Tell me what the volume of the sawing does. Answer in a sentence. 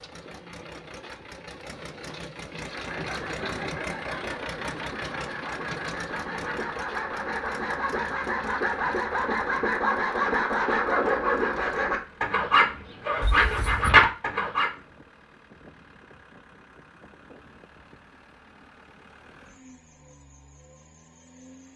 The volume of the sawing goes up.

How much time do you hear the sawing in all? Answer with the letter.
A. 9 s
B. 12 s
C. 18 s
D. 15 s
B.